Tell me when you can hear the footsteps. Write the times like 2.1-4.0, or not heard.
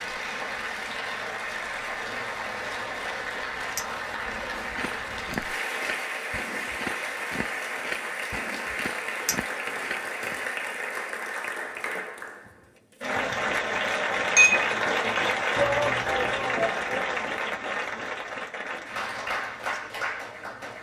4.5-10.5.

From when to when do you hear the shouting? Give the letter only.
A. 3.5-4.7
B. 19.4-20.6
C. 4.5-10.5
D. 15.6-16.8
D.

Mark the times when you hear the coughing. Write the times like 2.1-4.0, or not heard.
not heard.